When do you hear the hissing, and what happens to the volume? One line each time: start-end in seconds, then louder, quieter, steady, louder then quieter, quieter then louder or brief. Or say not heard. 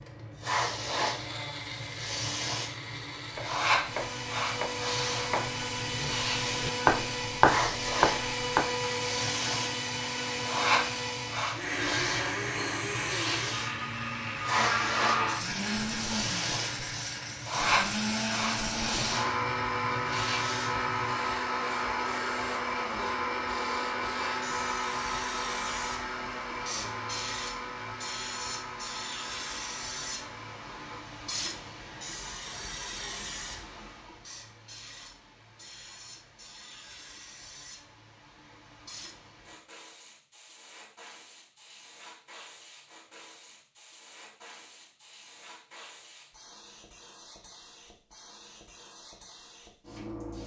0.0-50.4 quieter.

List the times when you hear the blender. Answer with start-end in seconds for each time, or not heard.
0.0-31.1.